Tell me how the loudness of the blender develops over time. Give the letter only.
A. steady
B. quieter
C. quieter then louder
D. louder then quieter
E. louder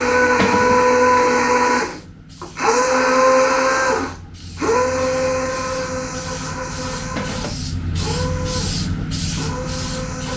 B.